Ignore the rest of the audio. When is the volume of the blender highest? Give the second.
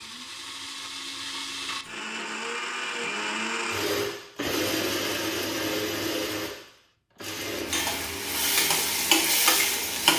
5 s.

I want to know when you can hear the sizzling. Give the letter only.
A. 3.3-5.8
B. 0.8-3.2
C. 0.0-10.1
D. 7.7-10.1
D.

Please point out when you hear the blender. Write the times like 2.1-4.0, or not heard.
0.0-10.1.